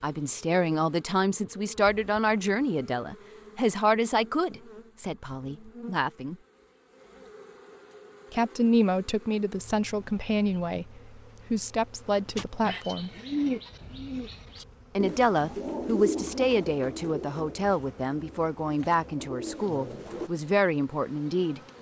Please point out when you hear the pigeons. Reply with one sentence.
You can hear the pigeons from 12.3 to 20.3 s.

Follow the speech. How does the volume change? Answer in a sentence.
The loudness of the speech stays about the same.